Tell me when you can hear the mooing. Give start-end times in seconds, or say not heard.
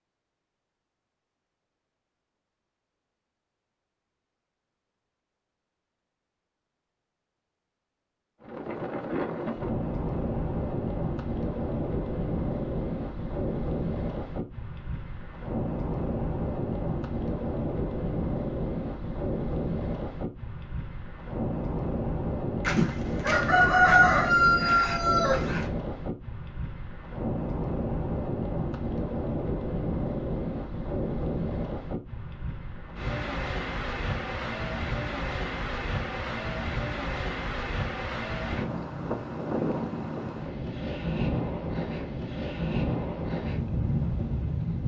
not heard.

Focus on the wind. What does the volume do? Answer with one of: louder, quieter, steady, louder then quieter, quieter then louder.
steady.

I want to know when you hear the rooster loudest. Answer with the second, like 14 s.
24 s.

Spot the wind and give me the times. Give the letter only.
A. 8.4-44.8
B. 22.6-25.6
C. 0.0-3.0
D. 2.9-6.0
A.